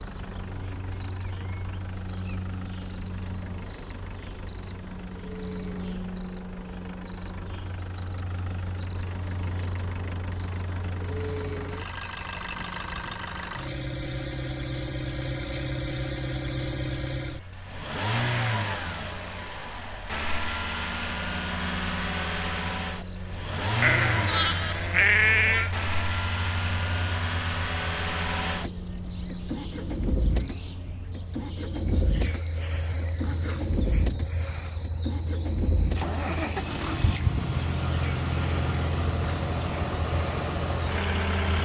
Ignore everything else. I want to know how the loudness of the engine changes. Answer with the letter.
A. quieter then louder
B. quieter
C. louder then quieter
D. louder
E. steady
D.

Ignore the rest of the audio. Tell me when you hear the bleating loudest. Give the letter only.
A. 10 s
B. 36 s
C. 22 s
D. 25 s
D.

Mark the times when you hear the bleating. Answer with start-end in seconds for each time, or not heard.
23.8-25.7.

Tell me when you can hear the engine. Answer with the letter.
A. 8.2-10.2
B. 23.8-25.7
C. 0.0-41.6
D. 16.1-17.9
C.